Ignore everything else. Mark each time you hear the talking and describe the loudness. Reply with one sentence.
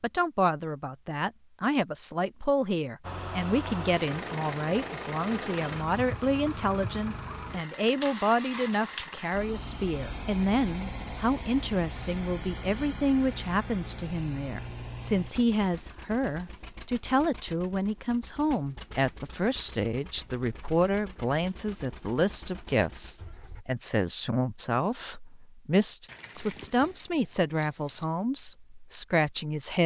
You can hear the talking from 0.0 to 29.8 s, at a steady volume.